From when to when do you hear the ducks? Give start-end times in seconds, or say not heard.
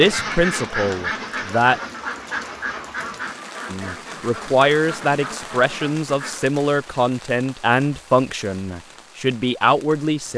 0.0-6.5.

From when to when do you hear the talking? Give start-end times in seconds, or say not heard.
0.0-1.8, 3.7-10.3.